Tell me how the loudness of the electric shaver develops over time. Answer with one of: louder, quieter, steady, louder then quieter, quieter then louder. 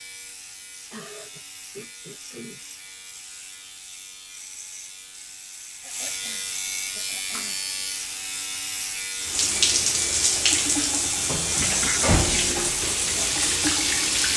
louder.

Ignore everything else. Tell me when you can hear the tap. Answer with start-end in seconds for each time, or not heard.
9.2-14.3.